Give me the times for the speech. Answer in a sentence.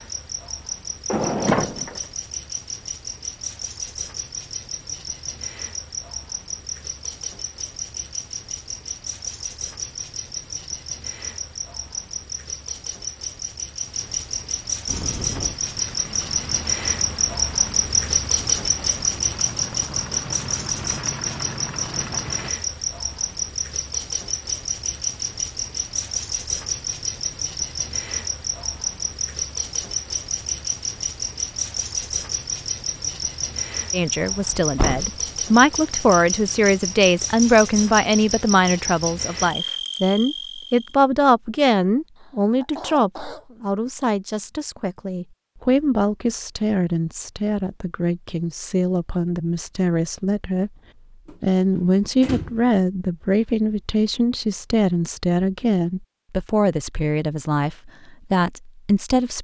The speech can be heard from 33.9 to 50.7 s and from 51.4 to 59.3 s.